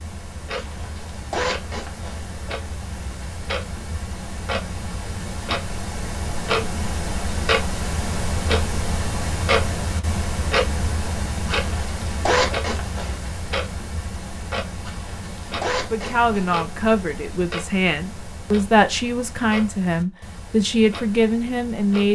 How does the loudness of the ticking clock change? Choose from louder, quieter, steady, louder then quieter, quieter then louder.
louder then quieter.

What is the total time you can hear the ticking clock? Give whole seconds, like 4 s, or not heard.
22 s.